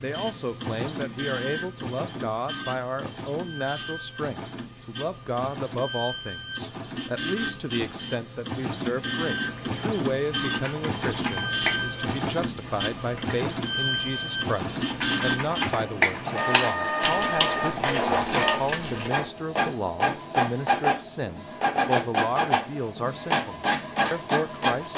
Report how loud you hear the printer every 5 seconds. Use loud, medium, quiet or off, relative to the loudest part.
medium, medium, loud, loud, loud.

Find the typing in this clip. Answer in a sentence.
You can hear the typing from 9.3 to 19.1 s.